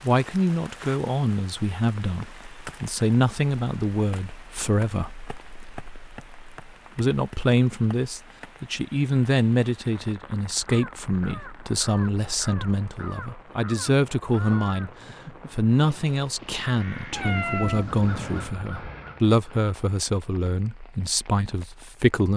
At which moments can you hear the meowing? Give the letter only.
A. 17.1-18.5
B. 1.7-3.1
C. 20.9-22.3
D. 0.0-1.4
A.